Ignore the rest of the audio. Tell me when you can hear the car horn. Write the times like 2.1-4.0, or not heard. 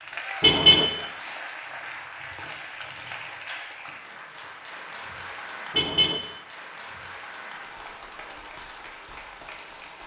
0.4-0.8, 5.7-6.2.